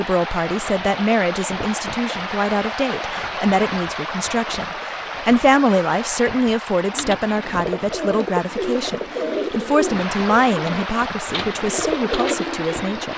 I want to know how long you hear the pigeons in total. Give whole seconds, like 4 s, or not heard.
6 s.